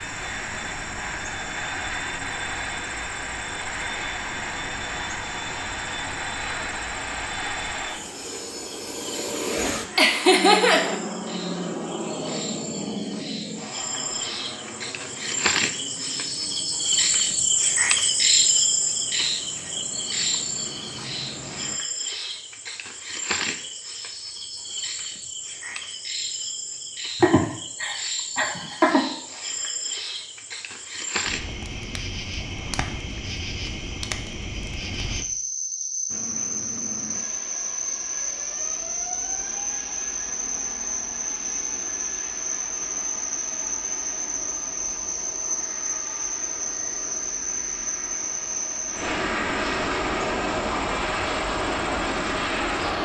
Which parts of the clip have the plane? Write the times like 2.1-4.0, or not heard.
0.0-21.8, 36.0-53.0.